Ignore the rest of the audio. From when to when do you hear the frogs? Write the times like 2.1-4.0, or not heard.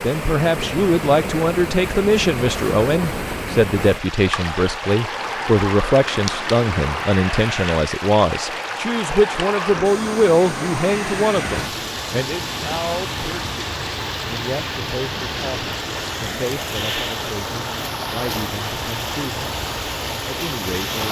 not heard.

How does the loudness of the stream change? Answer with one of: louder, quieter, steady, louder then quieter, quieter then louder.
steady.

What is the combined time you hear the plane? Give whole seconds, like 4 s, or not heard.
21 s.